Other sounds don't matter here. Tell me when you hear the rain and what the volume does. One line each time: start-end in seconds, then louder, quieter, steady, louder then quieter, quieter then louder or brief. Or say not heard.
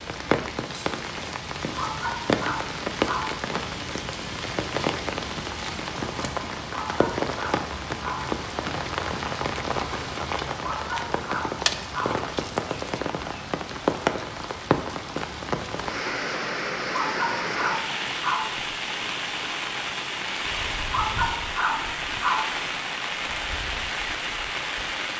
0.0-25.1 steady.